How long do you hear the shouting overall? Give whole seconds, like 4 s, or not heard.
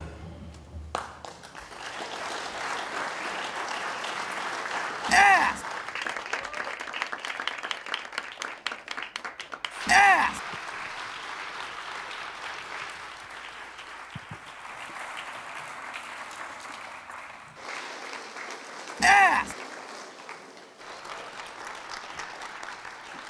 2 s.